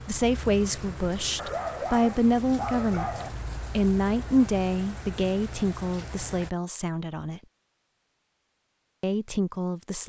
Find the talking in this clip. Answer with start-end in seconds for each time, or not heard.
0.1-7.4, 9.0-10.0.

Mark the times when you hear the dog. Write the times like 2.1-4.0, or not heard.
1.4-3.5.